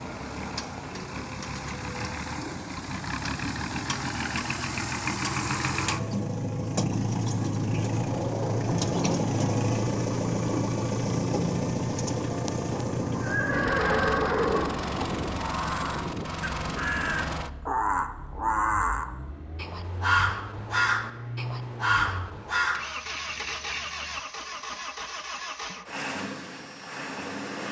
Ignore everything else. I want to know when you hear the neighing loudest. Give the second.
14 s.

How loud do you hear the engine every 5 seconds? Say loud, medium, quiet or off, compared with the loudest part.
medium, loud, loud, medium, medium, medium.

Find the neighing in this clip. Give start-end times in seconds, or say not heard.
12.7-15.1.